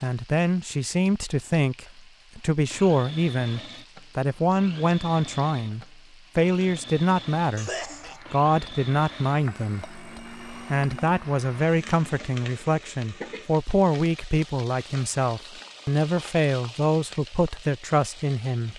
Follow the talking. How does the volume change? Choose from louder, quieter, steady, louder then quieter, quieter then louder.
steady.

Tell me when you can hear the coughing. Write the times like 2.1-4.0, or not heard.
7.5-8.2.